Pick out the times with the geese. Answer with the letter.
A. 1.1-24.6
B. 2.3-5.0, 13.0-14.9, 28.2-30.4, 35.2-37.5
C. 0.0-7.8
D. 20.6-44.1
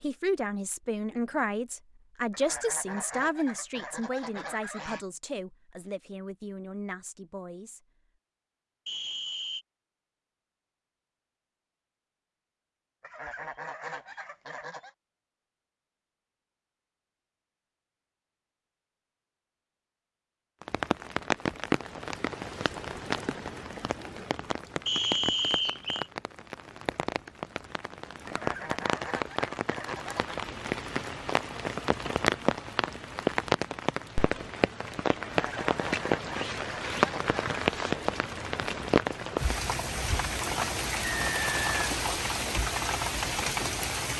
B.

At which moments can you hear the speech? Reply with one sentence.
The speech can be heard from 0.0 to 7.8 s.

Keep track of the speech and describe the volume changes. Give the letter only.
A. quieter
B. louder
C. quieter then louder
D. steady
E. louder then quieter
A.